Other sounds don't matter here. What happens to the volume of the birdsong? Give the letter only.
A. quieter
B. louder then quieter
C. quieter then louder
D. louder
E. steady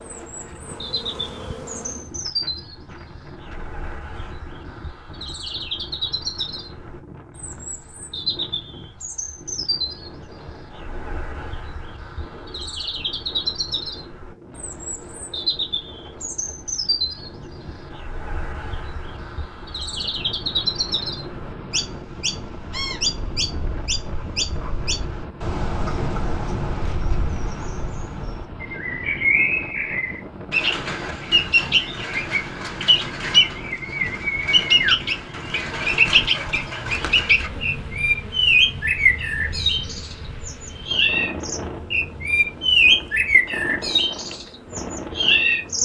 D.